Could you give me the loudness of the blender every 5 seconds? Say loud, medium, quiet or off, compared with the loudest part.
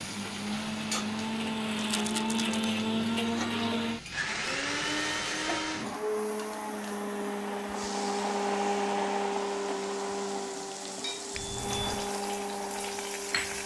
loud, loud, medium.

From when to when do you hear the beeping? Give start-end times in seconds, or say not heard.
11.3-12.2.